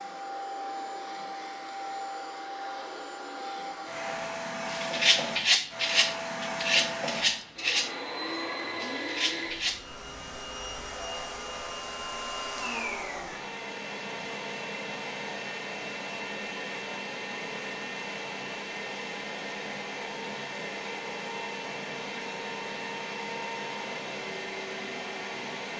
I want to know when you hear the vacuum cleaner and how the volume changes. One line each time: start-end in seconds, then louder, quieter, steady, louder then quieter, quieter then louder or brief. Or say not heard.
0.0-25.7 steady.